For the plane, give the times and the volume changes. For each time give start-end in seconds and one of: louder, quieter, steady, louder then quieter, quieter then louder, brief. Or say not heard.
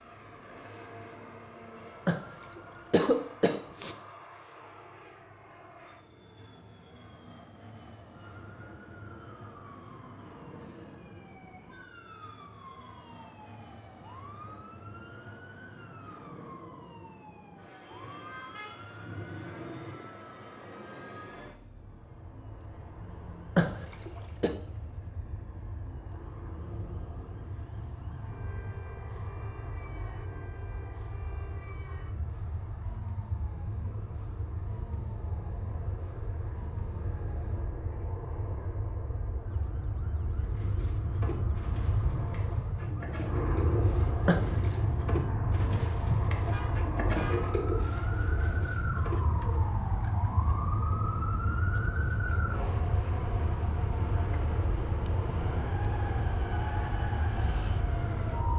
0.0-58.5 louder.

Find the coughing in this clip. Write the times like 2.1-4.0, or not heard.
2.0-4.0, 23.6-24.5, 44.2-44.8.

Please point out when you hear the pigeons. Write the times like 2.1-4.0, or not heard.
40.3-49.7.